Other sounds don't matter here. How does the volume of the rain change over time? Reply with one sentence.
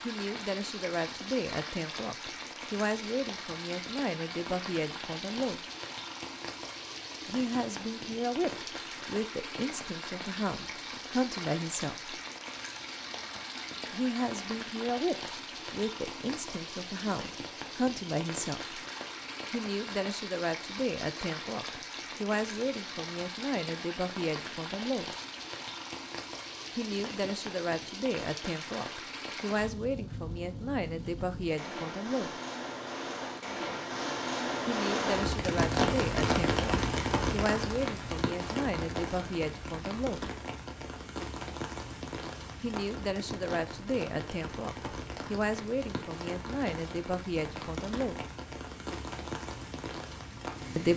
The loudness of the rain goes up, then down.